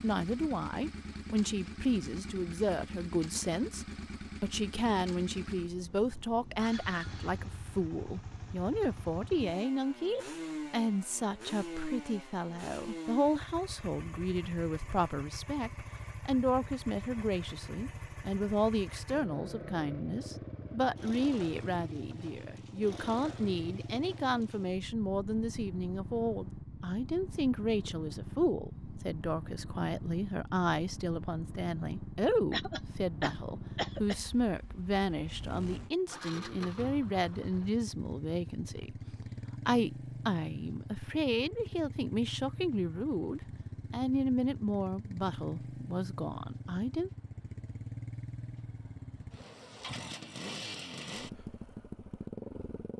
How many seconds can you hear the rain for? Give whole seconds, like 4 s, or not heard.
not heard.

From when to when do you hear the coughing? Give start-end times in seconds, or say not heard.
32.5-34.2.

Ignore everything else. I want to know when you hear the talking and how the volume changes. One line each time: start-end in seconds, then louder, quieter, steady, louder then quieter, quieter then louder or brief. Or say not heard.
0.0-47.1 steady.